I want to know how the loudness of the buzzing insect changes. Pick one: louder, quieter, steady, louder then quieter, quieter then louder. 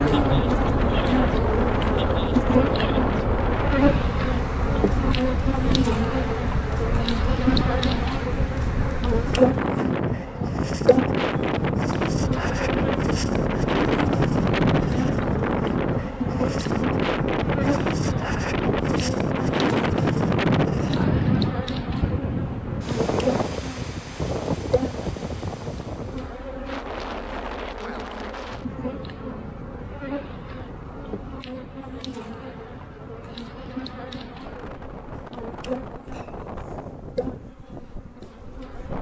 quieter.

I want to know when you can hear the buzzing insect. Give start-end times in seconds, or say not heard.
0.0-38.9.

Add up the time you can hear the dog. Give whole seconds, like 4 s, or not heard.
not heard.